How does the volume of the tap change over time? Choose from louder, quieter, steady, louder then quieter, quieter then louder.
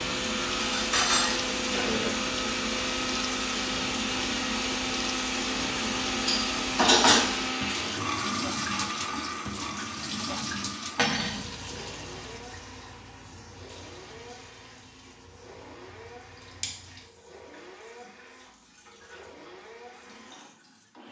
quieter.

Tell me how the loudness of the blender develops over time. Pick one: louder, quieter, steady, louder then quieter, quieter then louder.
quieter.